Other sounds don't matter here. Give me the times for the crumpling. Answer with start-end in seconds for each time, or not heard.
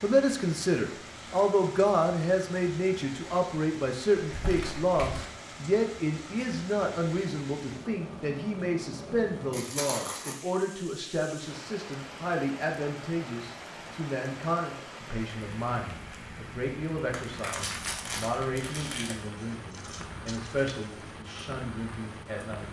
4.2-5.2, 9.5-10.3, 17.1-19.1.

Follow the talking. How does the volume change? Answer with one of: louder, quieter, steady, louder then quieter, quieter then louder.
quieter.